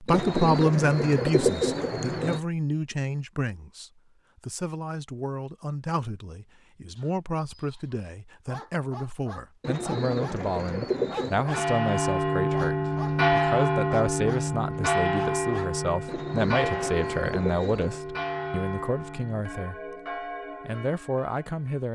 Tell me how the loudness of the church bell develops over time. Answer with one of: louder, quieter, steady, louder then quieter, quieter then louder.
quieter.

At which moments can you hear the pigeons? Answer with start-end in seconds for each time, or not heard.
0.1-2.4, 9.6-11.5, 16.1-18.0.